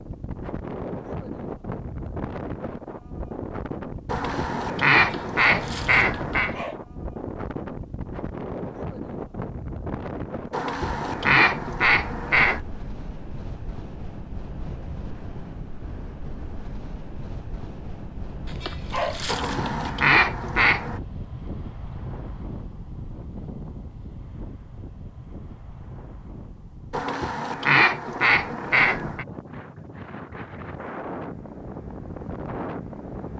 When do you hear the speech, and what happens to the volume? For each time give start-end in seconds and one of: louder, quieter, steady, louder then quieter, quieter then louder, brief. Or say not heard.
not heard.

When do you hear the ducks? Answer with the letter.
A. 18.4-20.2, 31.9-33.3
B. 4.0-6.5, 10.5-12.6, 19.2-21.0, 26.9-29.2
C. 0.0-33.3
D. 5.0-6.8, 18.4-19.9
B.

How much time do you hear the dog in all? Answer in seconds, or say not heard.
3 s.